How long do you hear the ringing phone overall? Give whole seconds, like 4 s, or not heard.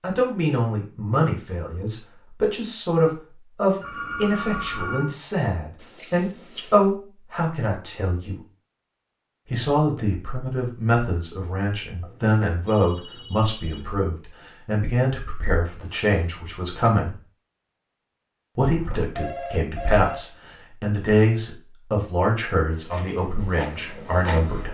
5 s.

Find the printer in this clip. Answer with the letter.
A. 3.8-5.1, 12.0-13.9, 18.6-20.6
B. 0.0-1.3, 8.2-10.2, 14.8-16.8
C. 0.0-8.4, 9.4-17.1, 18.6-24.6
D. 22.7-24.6
D.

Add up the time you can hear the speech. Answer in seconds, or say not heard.
22 s.